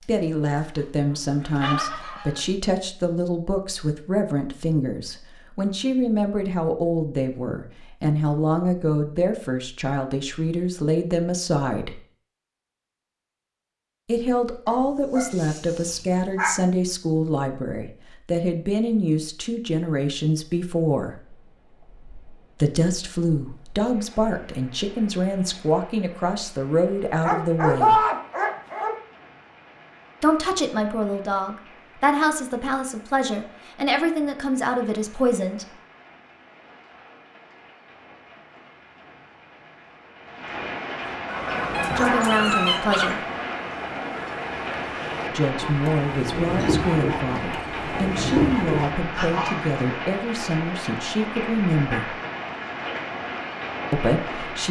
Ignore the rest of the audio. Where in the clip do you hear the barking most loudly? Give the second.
28 s.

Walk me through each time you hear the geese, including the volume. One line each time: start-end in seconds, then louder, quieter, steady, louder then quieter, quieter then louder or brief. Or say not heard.
0.0-2.5 brief
41.0-49.8 quieter then louder.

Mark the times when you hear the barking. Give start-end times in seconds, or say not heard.
14.7-16.6, 27.2-28.9, 41.7-43.2.